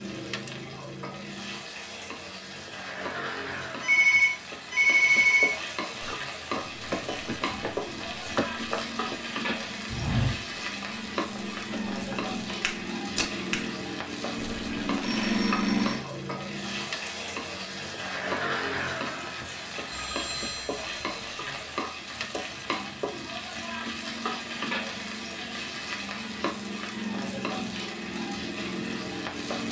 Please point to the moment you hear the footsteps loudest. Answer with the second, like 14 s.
10 s.